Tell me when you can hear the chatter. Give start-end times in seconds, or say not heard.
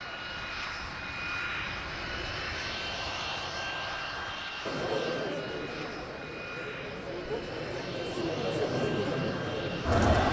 4.7-10.2.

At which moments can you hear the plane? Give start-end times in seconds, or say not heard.
0.0-10.2.